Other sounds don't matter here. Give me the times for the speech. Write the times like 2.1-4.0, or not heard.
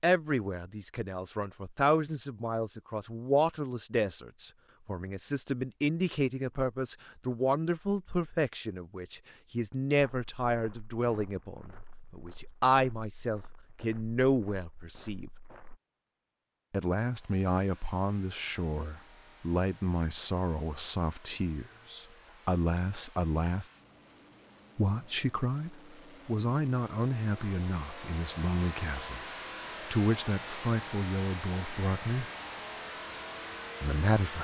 0.0-15.3, 16.7-23.6, 24.8-32.2, 33.8-34.3.